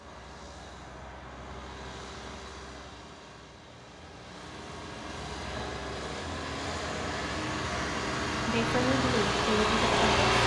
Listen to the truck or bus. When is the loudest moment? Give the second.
10 s.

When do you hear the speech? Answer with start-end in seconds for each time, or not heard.
8.4-10.2.